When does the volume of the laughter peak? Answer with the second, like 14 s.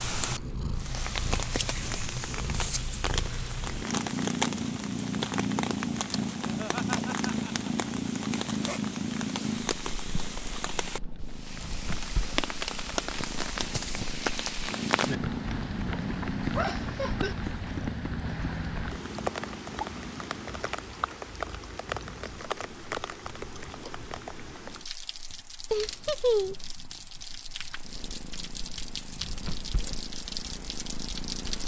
26 s.